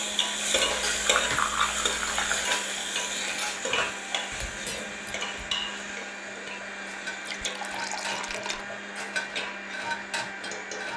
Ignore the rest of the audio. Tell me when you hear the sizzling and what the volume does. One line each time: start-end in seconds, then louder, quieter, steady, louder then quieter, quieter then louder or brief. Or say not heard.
0.0-10.9 quieter.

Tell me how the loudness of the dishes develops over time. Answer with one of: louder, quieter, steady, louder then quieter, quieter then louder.
quieter then louder.